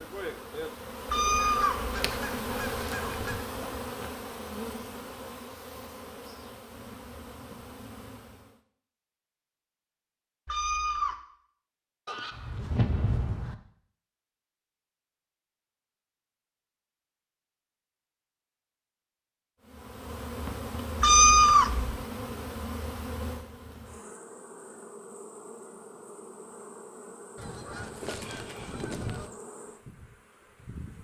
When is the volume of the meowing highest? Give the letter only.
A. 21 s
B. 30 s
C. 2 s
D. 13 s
A.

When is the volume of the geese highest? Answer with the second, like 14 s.
13 s.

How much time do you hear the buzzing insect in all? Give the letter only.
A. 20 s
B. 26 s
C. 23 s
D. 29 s
A.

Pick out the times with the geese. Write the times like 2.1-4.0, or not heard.
1.4-3.4, 12.1-13.6, 27.4-29.3.